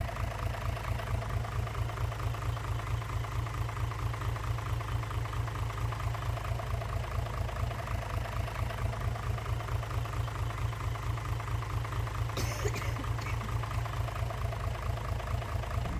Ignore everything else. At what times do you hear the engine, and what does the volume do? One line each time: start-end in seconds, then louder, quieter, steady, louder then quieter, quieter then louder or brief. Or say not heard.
0.0-15.9 steady.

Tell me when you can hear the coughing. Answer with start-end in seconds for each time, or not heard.
12.3-13.8.